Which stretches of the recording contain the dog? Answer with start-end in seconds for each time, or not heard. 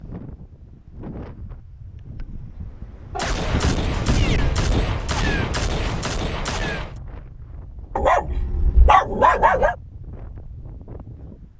8.0-9.8.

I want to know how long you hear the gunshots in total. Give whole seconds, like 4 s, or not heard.
4 s.